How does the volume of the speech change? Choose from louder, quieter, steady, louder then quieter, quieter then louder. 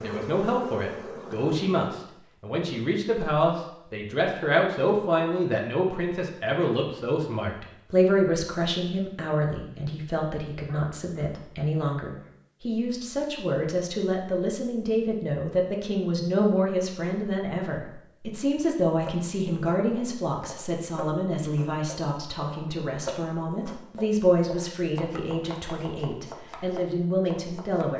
steady.